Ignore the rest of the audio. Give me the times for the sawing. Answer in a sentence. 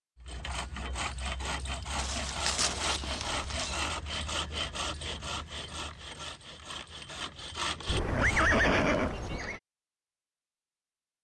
The sawing can be heard from 0.1 to 8.6 s.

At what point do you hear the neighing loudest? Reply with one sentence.
The volume of the neighing peaks at 9 seconds.